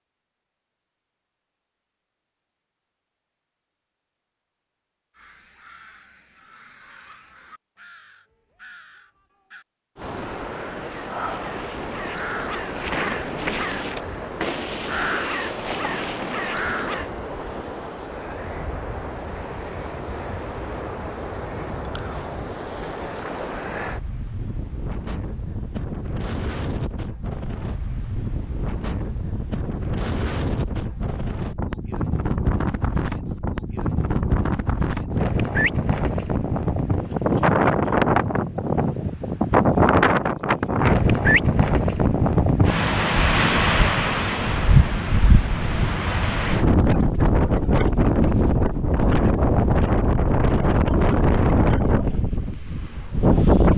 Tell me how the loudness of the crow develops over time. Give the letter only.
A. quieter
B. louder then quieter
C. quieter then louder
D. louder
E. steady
D.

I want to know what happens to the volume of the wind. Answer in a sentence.
The loudness of the wind goes up.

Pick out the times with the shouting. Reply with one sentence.
The shouting can't be heard in this clip.